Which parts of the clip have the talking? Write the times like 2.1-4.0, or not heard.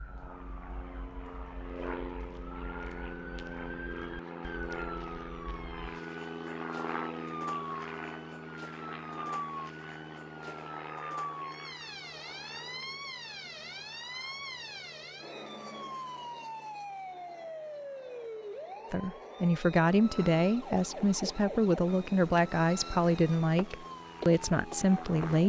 18.9-25.4.